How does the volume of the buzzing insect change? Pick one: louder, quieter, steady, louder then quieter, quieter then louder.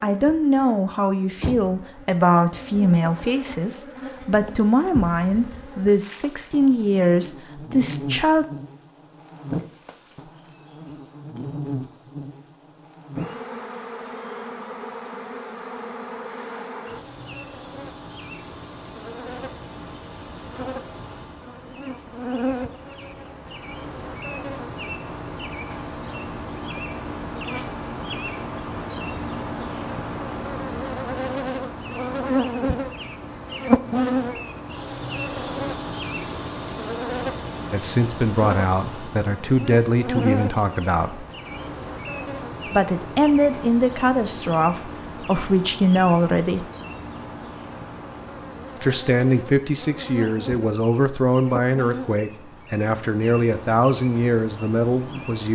louder then quieter.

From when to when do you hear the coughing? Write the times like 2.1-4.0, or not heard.
not heard.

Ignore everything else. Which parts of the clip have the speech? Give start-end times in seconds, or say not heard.
0.0-8.4, 37.7-41.2, 42.6-46.6, 48.8-55.5.